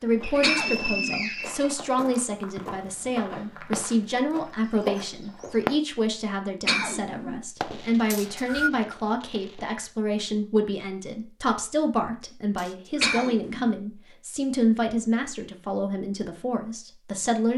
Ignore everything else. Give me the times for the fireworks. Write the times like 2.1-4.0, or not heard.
2.5-3.8, 7.6-9.8.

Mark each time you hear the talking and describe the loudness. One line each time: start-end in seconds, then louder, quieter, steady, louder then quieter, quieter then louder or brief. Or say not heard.
0.0-17.5 steady.